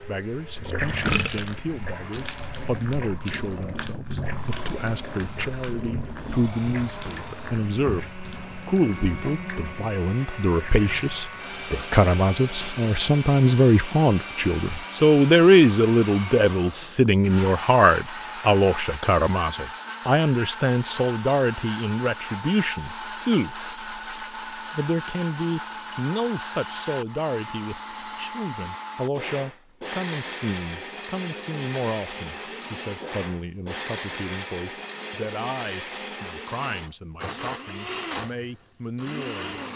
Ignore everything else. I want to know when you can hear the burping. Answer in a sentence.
The burping can be heard from 1.0 to 1.6 s.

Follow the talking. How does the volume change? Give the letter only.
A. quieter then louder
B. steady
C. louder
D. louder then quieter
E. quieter
D.